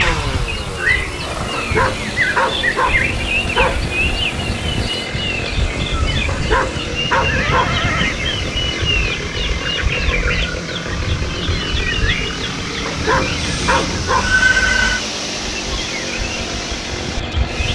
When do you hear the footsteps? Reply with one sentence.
You can't hear the footsteps here.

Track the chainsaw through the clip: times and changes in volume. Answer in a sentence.
The chainsaw can be heard from 0.0 to 17.6 s, at a steady volume.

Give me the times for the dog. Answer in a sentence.
You can hear the dog from 1.5 to 3.8 s, from 6.3 to 7.8 s and from 12.8 to 14.4 s.